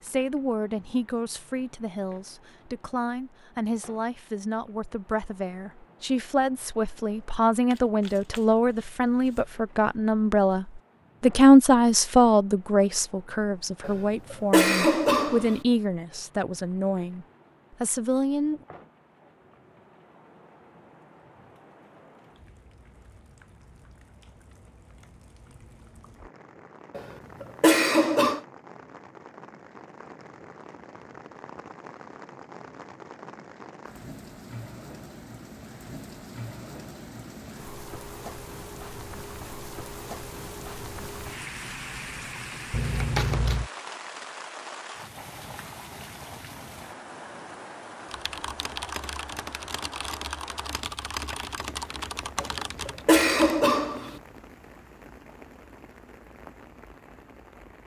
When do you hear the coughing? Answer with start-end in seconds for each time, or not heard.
13.8-15.6, 26.9-28.4, 52.4-54.1.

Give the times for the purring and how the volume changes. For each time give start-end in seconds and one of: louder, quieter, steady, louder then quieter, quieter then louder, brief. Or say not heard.
not heard.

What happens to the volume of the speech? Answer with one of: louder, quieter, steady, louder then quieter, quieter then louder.
louder then quieter.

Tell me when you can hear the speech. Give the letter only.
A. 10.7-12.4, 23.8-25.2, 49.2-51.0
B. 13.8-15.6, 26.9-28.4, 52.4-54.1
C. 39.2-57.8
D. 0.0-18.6
D.